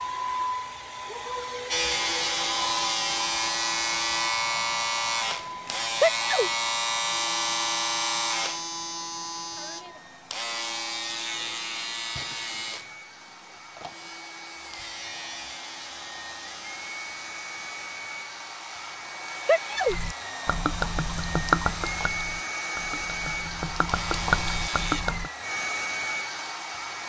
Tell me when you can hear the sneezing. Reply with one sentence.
The sneezing can be heard from 6.0 to 6.5 s and from 19.4 to 19.9 s.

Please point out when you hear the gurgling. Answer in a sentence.
You can hear the gurgling from 19.9 to 25.3 s.